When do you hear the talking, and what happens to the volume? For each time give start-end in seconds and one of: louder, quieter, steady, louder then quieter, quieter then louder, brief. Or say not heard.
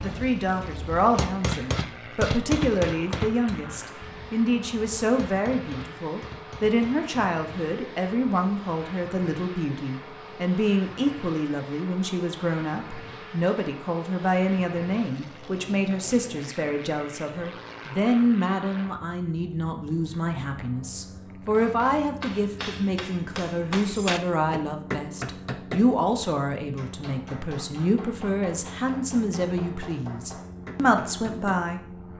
0.0-31.8 steady.